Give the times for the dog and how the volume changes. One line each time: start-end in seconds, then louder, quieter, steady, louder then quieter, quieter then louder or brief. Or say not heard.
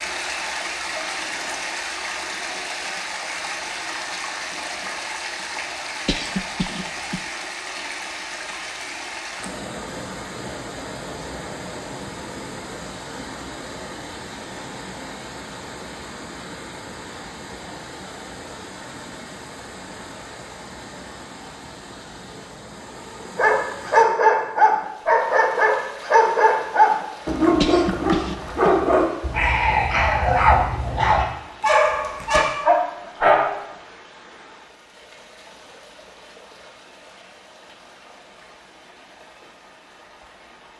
23.4-33.5 steady.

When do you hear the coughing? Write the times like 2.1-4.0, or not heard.
6.0-7.2, 27.6-28.8.